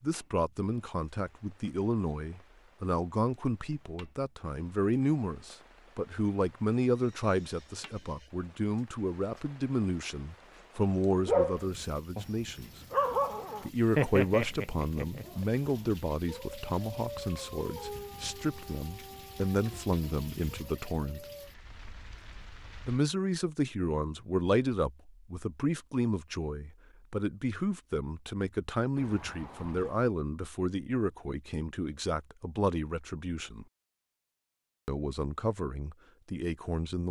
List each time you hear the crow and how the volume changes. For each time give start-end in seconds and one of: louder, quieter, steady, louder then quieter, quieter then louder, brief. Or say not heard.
not heard.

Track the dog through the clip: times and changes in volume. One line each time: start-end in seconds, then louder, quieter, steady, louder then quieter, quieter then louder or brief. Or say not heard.
11.2-21.5 quieter.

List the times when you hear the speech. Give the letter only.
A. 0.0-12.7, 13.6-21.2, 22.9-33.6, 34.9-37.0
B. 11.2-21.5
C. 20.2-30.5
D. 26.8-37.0
A.